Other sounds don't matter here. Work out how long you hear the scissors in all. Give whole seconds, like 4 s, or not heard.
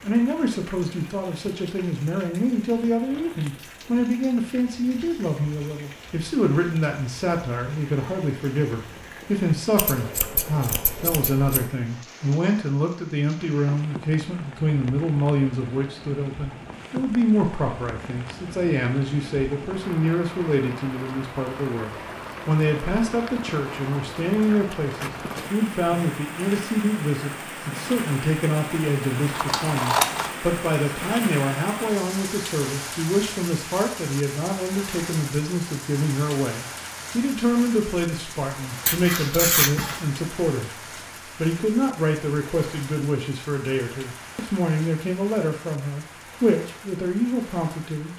4 s.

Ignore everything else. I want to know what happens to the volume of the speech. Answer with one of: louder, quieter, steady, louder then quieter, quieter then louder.
steady.